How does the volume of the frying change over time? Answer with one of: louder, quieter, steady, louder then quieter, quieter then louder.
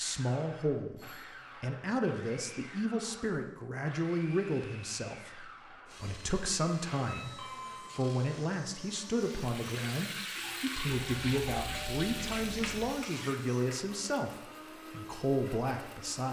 steady.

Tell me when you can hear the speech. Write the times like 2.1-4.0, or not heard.
0.0-16.2.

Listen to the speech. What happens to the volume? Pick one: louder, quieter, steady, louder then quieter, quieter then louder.
steady.